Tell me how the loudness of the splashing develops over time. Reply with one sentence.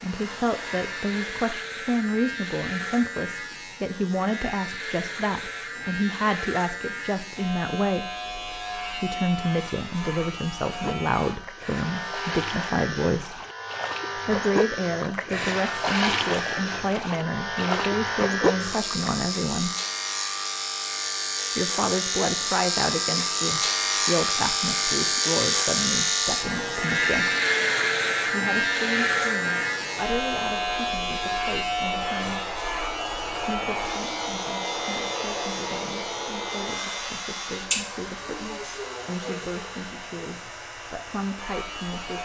The volume of the splashing goes up.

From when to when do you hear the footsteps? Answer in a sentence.
The footsteps can't be heard in this clip.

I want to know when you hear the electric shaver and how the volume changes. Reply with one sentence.
The electric shaver can be heard from 0.0 to 42.2 s, getting louder then quieter.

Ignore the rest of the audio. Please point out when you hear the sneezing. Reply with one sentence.
The sneezing can't be heard in this clip.